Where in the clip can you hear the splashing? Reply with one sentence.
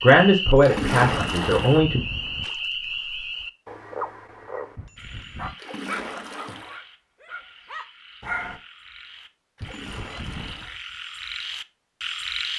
You can hear the splashing from 0.6 to 1.8 s, from 5.5 to 6.8 s and from 9.6 to 10.8 s.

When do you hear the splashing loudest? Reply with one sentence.
The loudest moment of the splashing is at 1 second.